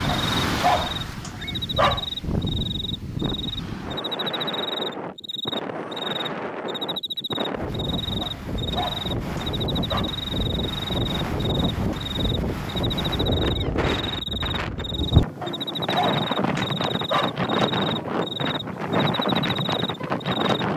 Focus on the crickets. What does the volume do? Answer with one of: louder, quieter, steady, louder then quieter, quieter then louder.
steady.